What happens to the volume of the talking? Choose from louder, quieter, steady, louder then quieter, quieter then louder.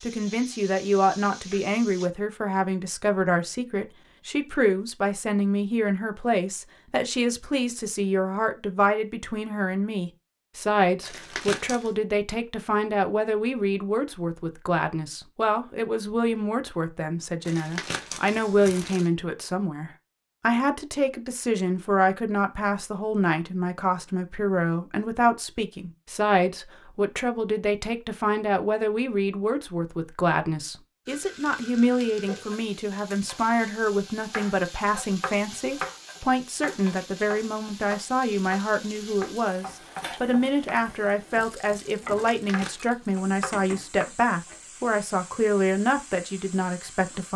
steady.